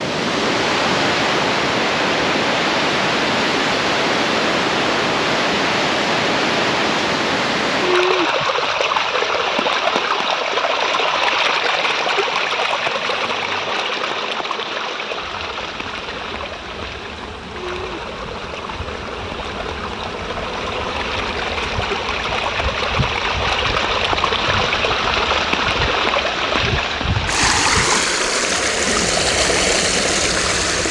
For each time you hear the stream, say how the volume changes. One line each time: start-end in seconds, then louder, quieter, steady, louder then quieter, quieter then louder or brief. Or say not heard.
0.0-30.8 quieter then louder.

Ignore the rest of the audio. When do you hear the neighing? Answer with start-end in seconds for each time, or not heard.
not heard.